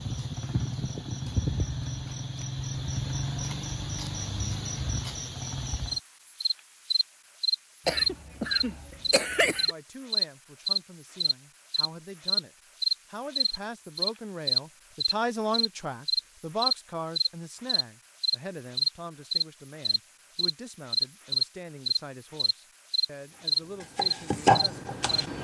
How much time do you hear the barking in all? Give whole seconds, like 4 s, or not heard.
not heard.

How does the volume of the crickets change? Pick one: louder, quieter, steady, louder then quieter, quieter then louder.
louder.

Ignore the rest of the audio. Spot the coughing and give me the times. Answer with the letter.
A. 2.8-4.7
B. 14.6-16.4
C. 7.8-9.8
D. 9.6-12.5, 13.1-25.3
C.